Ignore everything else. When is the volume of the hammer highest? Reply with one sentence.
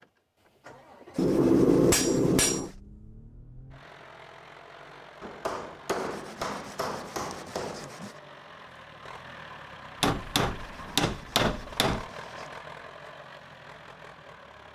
The loudest moment of the hammer is at 2 seconds.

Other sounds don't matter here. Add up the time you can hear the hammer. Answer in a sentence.
You can hear the hammer for 6 seconds altogether.